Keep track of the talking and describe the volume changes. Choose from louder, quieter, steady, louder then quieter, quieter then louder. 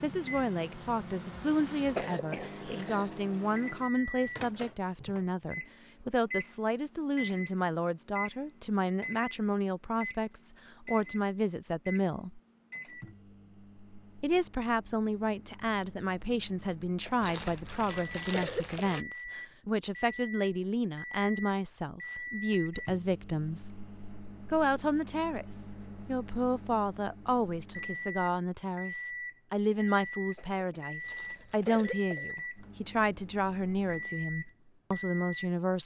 steady.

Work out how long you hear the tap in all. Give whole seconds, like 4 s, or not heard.
not heard.